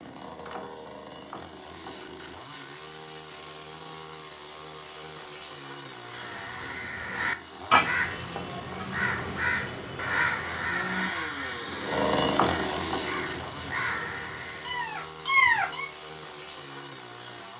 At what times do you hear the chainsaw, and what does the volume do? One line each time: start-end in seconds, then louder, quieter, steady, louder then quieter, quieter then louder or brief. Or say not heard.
0.0-17.5 louder then quieter.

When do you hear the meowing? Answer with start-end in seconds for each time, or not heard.
14.7-15.9.